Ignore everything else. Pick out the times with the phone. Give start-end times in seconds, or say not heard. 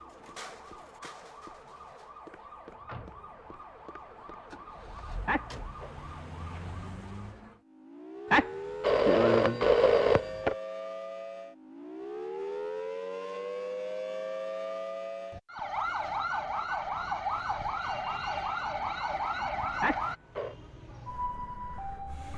5.2-5.9, 8.3-10.6, 19.8-20.6.